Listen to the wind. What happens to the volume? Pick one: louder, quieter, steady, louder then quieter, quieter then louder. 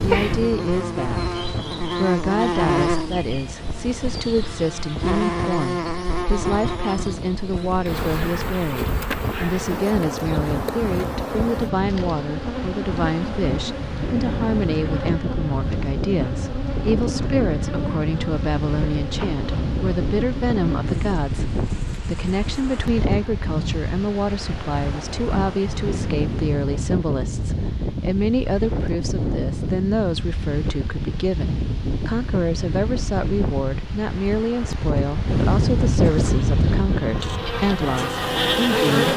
louder.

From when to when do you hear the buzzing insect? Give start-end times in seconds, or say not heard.
0.0-22.9, 36.0-39.1.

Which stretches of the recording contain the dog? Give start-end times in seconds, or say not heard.
not heard.